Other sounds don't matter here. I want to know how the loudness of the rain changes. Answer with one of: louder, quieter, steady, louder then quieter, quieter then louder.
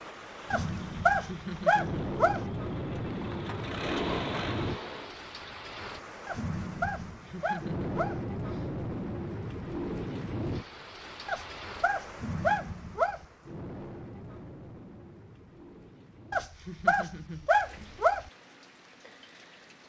quieter.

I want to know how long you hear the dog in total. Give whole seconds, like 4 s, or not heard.
8 s.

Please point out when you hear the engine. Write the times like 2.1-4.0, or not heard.
0.0-5.2.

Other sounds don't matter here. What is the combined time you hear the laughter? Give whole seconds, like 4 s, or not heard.
4 s.